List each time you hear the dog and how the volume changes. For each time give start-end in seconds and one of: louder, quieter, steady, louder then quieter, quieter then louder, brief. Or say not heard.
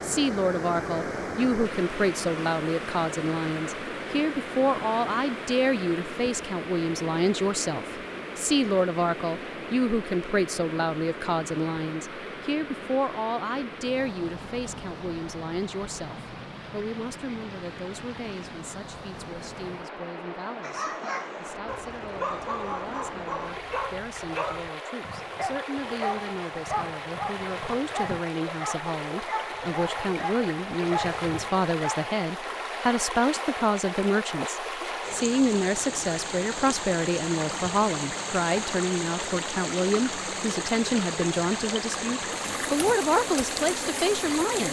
20.6-32.1 steady.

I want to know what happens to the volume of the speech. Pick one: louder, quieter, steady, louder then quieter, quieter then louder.
quieter then louder.